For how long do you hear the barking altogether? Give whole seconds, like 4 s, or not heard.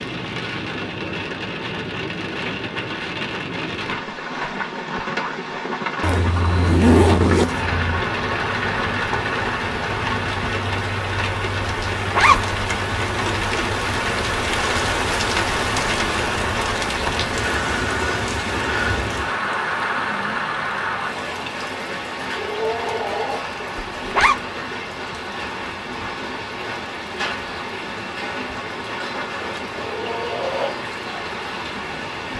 not heard.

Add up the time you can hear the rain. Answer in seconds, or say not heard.
32 s.